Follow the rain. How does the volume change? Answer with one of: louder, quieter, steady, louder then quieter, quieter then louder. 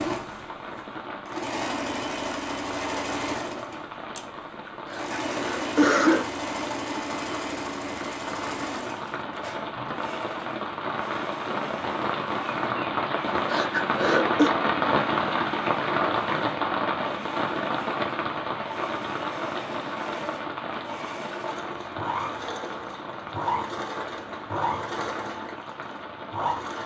louder then quieter.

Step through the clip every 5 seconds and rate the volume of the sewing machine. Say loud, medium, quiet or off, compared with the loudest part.
loud, loud, medium, medium, loud, loud.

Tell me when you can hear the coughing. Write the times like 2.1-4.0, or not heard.
4.8-6.2, 13.4-14.5.